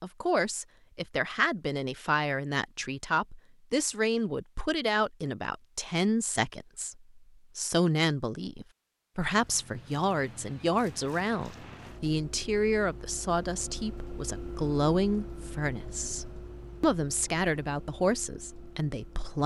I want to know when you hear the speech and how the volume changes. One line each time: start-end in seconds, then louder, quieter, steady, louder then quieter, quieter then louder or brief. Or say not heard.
0.0-19.4 steady.